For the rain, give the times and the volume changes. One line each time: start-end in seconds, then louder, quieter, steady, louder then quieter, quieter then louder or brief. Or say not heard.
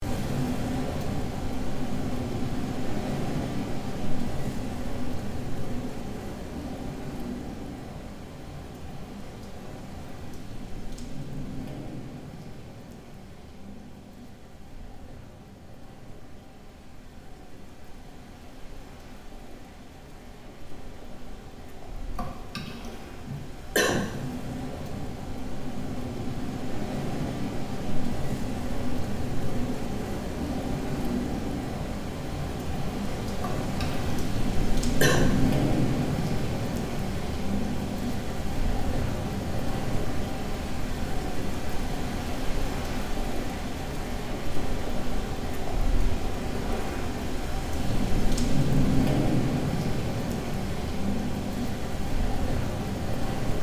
0.0-53.5 quieter then louder.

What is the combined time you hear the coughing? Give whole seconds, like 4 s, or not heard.
4 s.